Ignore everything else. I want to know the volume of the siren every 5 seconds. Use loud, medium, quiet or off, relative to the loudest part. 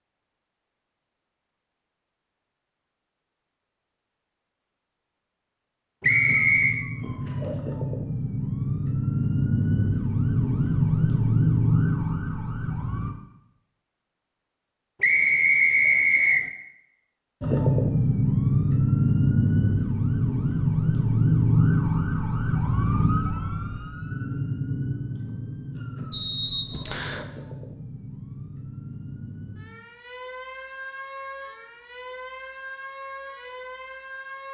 off, medium, loud, loud, loud, quiet, quiet.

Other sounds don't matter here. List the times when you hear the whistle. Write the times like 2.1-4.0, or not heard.
6.0-6.8, 15.0-16.4, 26.1-27.2.